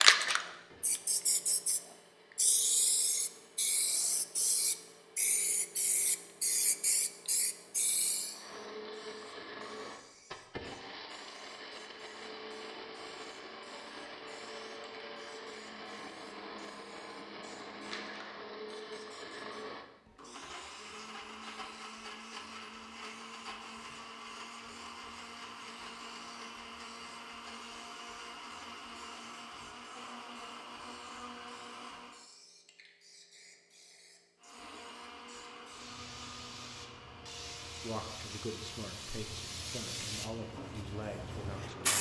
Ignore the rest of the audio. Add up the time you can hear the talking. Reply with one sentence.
You can hear the talking for 4 seconds altogether.